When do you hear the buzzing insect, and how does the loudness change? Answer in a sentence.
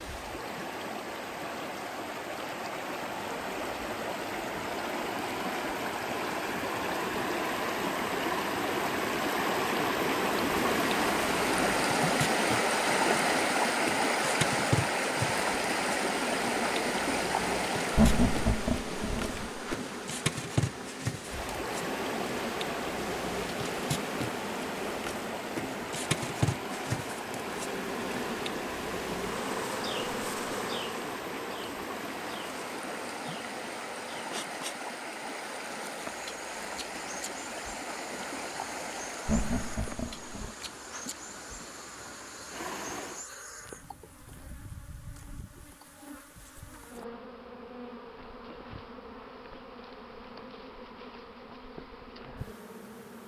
The buzzing insect can be heard from 10.2 to 53.2 s, getting quieter.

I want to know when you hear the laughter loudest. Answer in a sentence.
The loudest moment of the laughter is at 18 seconds.